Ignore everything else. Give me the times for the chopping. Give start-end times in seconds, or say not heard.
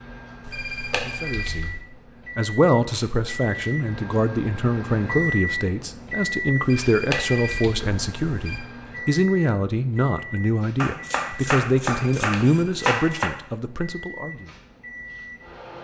10.8-13.3.